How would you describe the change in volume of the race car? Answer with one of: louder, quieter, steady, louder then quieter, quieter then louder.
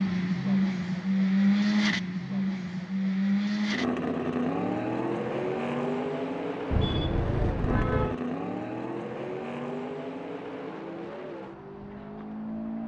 quieter.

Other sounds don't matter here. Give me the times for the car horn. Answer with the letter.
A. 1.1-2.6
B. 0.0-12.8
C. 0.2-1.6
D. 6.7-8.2
D.